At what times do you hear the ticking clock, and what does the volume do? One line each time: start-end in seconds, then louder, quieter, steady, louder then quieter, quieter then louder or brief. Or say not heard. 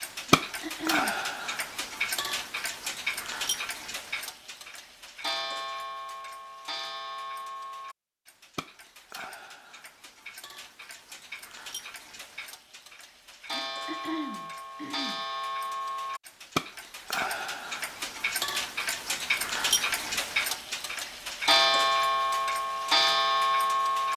0.0-24.1 quieter then louder.